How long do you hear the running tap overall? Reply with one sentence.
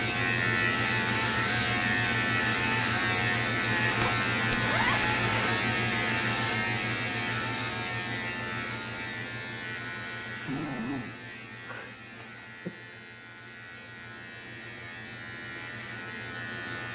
You can't hear the running tap here.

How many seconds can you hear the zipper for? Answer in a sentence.
The zipper can be heard for 2 seconds in total.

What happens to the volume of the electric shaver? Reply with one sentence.
The volume of the electric shaver goes down.